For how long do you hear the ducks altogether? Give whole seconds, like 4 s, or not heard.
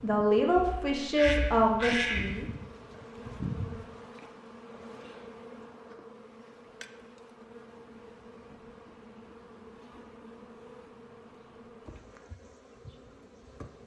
2 s.